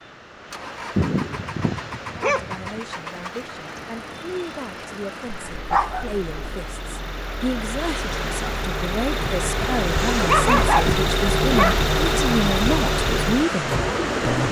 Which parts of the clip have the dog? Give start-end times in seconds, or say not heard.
0.9-2.8, 5.5-6.5, 10.2-11.8.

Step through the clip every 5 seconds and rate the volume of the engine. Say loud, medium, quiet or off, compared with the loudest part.
quiet, medium, loud.